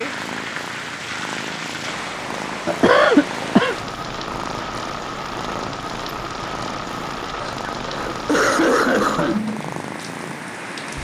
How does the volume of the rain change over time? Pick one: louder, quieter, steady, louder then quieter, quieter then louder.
steady.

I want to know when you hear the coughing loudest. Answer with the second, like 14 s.
3 s.